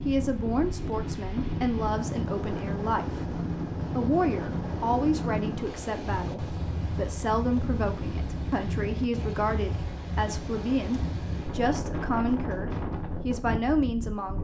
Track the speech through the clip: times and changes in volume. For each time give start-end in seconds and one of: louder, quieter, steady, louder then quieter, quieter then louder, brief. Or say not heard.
0.0-14.4 steady.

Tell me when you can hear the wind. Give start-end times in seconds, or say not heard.
0.0-14.4.